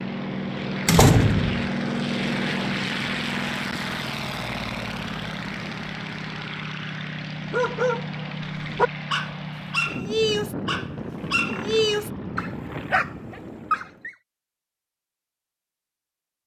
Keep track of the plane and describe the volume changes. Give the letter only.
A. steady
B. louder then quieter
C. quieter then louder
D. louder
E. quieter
E.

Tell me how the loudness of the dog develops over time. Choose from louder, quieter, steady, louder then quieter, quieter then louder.
steady.